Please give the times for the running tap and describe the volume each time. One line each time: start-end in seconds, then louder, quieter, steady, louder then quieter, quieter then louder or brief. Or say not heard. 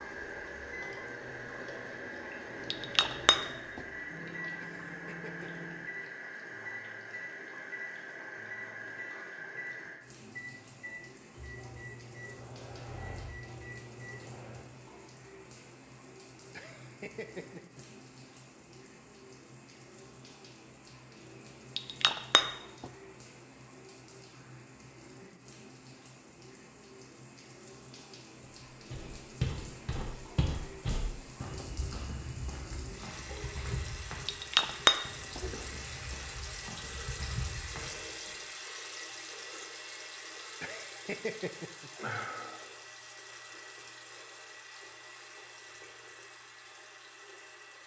0.0-47.8 quieter then louder.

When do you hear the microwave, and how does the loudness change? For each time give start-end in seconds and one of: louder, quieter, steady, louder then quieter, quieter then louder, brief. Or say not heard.
0.0-14.7 steady.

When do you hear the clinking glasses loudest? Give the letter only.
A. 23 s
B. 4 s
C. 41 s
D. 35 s
D.